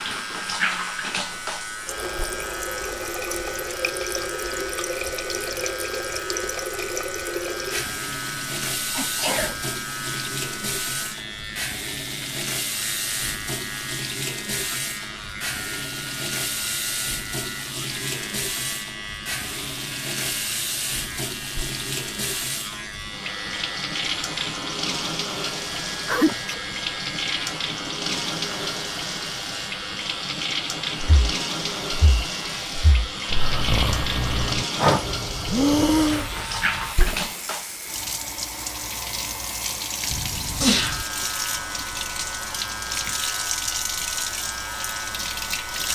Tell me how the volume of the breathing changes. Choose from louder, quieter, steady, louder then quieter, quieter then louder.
louder.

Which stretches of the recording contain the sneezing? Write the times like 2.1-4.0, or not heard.
8.9-9.6, 26.1-26.6, 40.1-41.0.